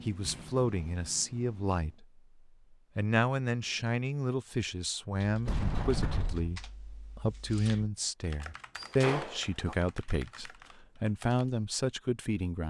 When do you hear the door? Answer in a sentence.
You can hear the door from 0.2 to 1.2 s, from 5.5 to 6.5 s and from 8.8 to 9.8 s.